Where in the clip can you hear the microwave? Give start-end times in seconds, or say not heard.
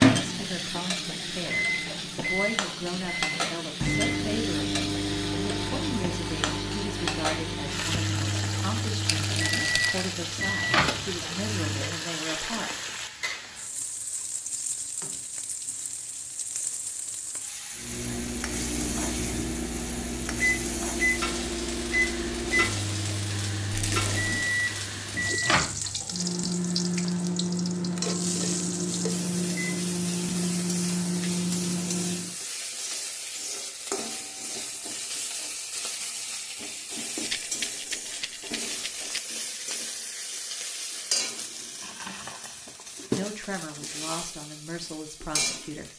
0.0-12.0, 17.8-32.4.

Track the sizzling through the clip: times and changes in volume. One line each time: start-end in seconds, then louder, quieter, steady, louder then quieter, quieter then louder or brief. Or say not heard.
0.0-45.9 steady.